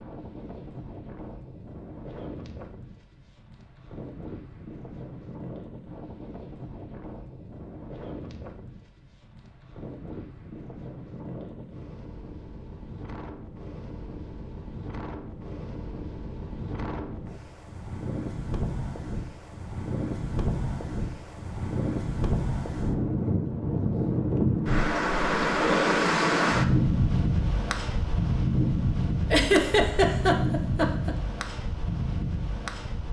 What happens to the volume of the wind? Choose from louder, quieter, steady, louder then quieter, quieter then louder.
louder.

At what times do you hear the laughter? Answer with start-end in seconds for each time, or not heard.
29.3-31.1.